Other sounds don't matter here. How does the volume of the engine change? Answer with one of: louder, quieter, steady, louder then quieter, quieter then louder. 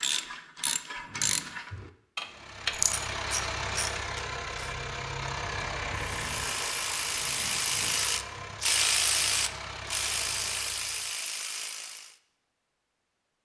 quieter.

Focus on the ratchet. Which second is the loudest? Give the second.
9 s.